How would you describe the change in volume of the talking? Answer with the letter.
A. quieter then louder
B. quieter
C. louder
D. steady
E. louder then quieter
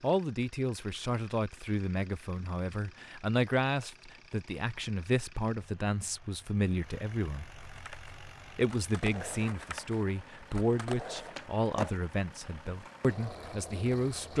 D.